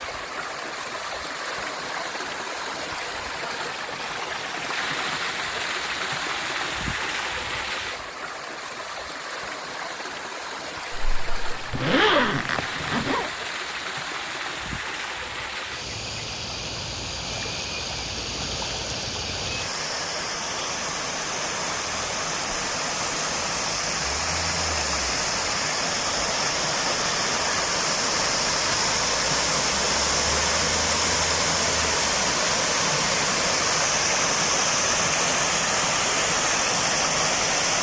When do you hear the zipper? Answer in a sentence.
You can hear the zipper from 10.9 to 13.3 s.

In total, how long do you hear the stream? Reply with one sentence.
The stream can be heard for 38 seconds in total.